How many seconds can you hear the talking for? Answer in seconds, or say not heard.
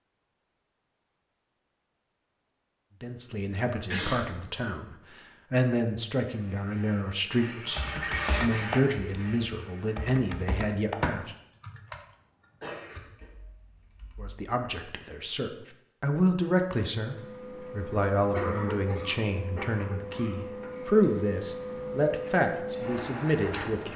18 s.